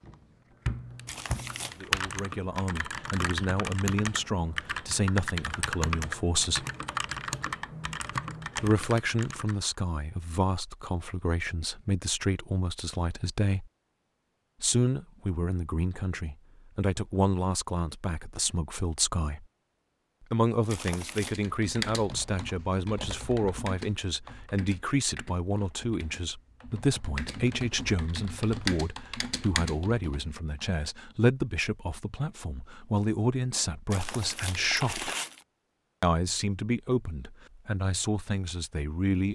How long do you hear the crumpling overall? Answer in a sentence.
The crumpling can be heard for 3 seconds in total.